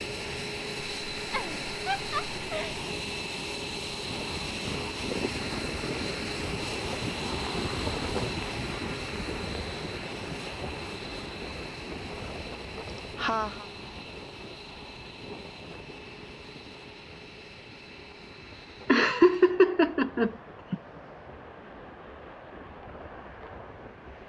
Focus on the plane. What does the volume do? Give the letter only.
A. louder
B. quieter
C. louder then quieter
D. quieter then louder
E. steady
B.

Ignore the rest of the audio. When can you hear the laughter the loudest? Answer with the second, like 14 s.
19 s.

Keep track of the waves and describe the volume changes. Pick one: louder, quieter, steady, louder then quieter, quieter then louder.
quieter.